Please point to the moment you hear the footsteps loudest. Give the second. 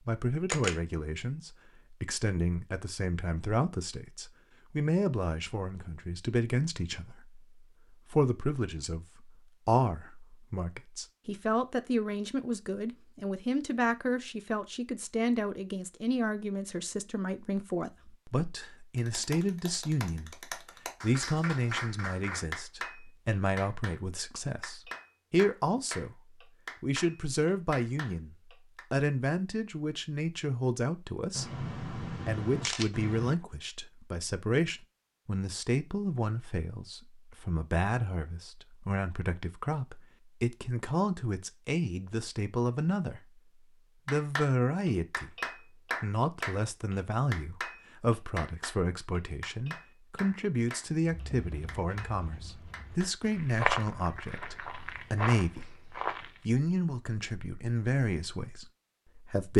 54 s.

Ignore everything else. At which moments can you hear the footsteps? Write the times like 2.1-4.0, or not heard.
51.0-56.4.